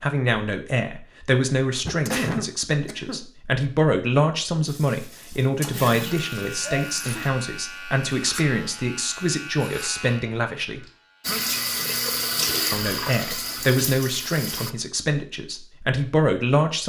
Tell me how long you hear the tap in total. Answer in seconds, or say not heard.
6 s.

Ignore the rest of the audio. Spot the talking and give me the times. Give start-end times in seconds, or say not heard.
0.0-10.8, 12.7-16.8.